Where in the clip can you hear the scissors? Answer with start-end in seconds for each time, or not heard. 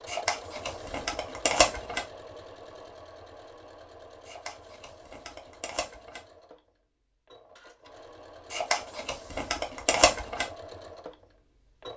0.1-2.0, 4.2-6.2, 8.5-10.5.